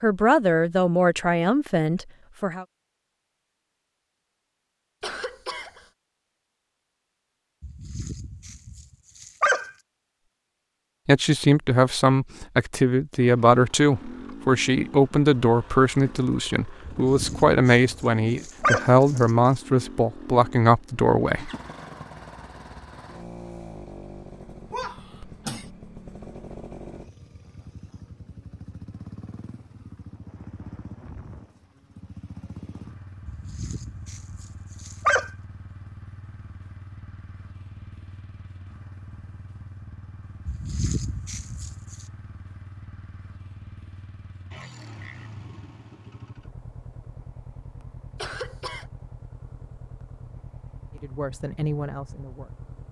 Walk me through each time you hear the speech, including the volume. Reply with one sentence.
You can hear the speech briefly from 0.0 to 2.6 s; from 11.1 to 21.5 s, at a steady volume; and briefly from 51.0 to 52.5 s.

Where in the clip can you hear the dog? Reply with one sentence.
You can hear the dog from 7.6 to 9.7 s, from 16.9 to 19.3 s, from 33.2 to 35.3 s and from 40.5 to 42.0 s.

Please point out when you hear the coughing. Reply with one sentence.
The coughing can be heard from 5.0 to 5.9 s, from 24.7 to 25.7 s and from 48.1 to 48.9 s.